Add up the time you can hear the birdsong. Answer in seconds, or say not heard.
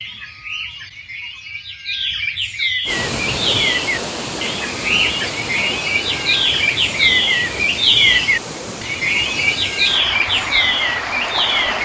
12 s.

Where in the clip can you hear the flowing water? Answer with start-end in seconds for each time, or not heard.
2.9-11.8.